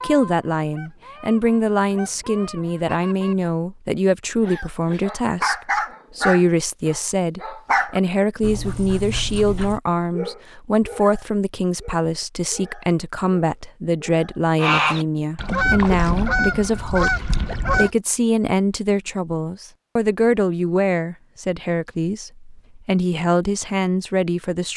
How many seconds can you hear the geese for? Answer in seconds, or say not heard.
7 s.